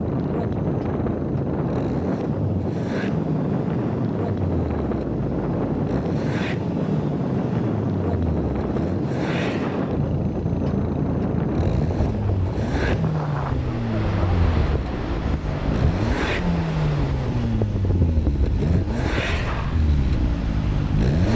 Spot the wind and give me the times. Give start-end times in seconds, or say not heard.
0.0-21.2.